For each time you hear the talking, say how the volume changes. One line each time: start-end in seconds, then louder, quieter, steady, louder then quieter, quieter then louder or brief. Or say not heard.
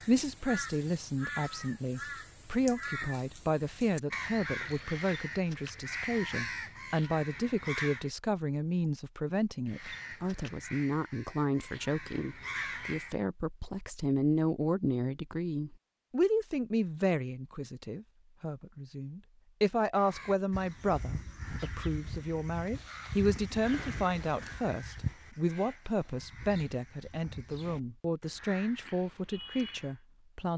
0.1-30.5 steady.